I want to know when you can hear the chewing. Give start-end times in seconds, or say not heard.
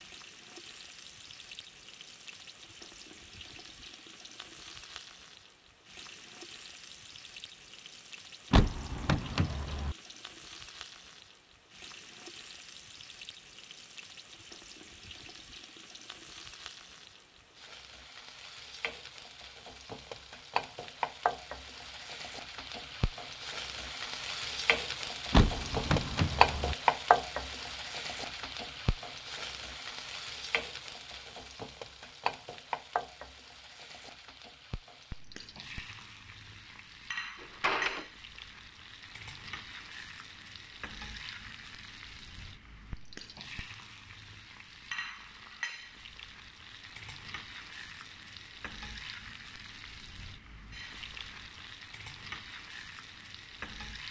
not heard.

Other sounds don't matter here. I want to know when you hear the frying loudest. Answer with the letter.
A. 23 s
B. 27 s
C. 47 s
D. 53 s
B.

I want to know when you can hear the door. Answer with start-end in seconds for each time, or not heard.
8.5-9.9, 25.3-26.8, 37.4-38.0.